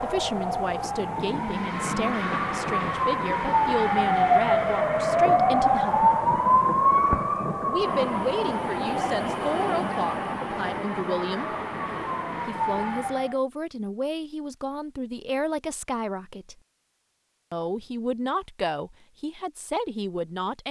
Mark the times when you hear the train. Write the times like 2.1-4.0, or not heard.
7.8-12.5.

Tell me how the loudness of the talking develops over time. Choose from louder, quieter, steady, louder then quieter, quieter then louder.
steady.